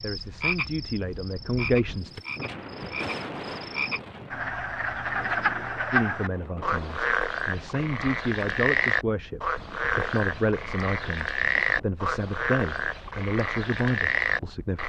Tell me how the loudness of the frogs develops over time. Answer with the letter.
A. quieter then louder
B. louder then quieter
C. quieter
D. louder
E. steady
D.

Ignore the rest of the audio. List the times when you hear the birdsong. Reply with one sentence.
The birdsong can't be heard in this clip.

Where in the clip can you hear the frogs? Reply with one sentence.
The frogs can be heard from 0.0 to 14.8 s.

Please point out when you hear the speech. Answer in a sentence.
The speech can be heard from 0.0 to 2.2 s and from 5.9 to 14.8 s.